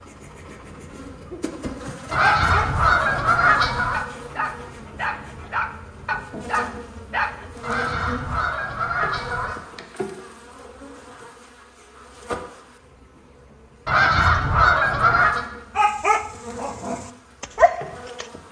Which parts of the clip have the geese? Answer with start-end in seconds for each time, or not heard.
2.1-4.0, 7.6-9.6, 13.8-15.4.